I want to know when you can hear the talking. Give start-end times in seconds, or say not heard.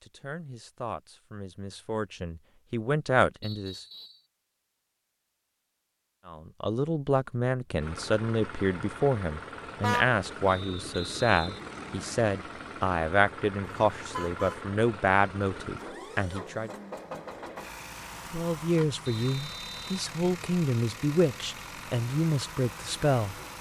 0.0-3.9, 6.2-16.7, 18.3-23.4.